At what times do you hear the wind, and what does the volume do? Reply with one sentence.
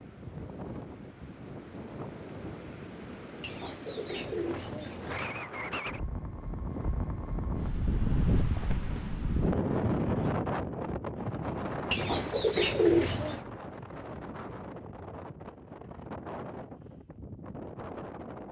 You can hear the wind from 0.0 to 18.4 s, getting louder then quieter.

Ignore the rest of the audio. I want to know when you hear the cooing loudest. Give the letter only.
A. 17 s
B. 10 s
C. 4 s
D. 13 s
D.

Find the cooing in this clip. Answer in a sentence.
You can hear the cooing from 3.4 to 5.3 s and from 11.9 to 13.4 s.